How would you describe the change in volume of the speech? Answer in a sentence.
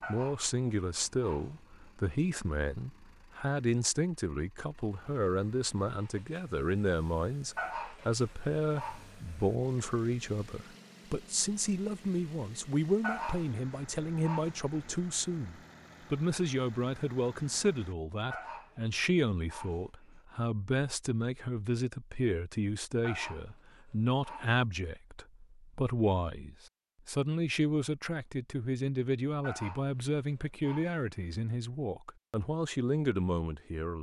The volume of the speech stays about the same.